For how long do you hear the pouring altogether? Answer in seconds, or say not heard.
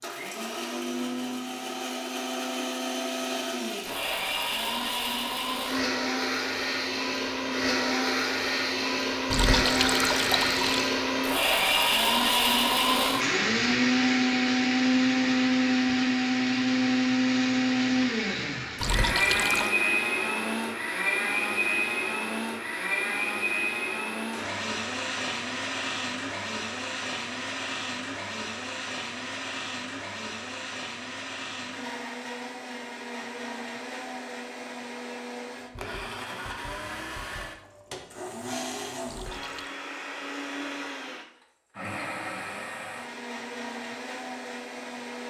3 s.